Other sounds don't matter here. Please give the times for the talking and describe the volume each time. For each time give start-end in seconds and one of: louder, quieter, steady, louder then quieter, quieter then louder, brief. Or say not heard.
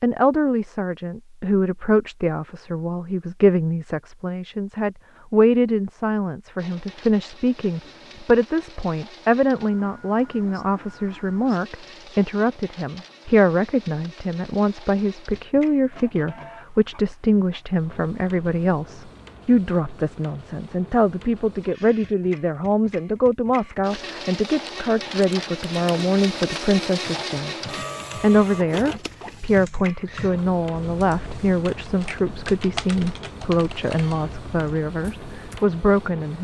0.0-27.6 steady
28.2-36.3 steady.